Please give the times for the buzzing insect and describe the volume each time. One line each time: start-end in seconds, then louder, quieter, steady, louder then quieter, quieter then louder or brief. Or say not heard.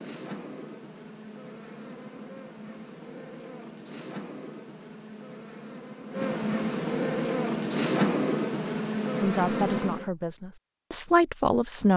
0.0-10.1 louder.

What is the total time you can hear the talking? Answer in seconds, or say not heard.
3 s.